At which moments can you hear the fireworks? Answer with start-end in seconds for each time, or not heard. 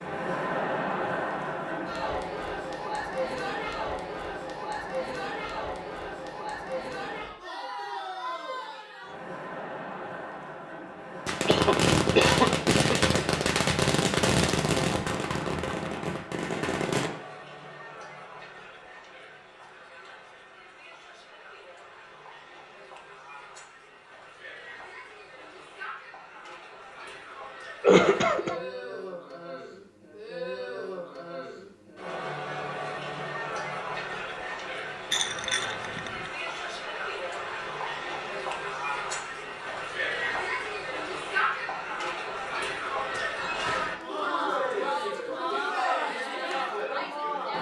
11.2-17.1.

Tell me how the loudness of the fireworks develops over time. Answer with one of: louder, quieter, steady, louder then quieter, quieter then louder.
quieter.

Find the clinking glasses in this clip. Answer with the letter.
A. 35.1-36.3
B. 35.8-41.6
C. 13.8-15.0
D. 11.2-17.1
A.